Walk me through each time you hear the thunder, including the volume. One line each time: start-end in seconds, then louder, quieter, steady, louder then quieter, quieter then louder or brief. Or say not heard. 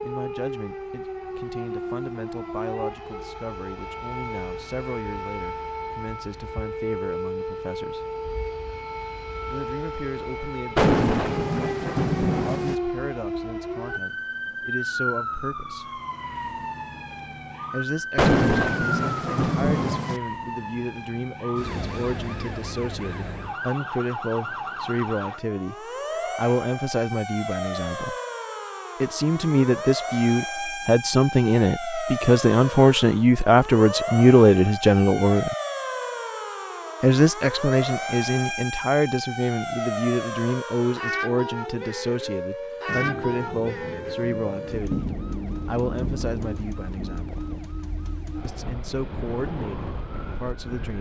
10.8-12.8 brief
18.1-20.2 brief
42.9-47.6 louder then quieter.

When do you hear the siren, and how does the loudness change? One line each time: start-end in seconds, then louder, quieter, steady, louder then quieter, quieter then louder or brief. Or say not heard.
0.0-50.9 steady.